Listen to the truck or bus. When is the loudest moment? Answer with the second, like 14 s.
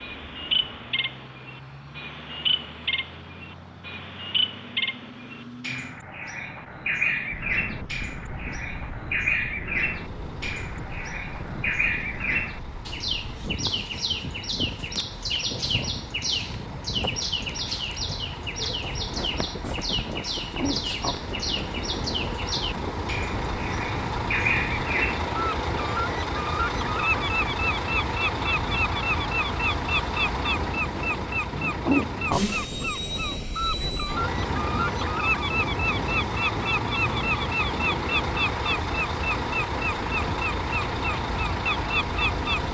32 s.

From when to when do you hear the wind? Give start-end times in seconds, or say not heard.
7.3-42.6.